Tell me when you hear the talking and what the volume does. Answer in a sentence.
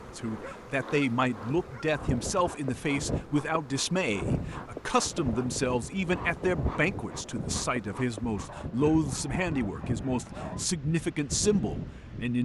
The talking can be heard from 0.1 to 12.4 s, at a steady volume.